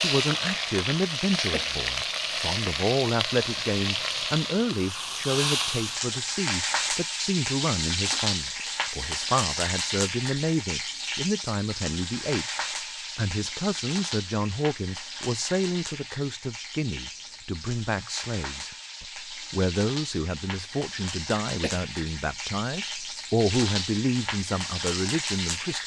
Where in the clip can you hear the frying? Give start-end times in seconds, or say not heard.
0.0-25.8.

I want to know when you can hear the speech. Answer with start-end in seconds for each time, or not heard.
0.0-12.6, 13.2-25.8.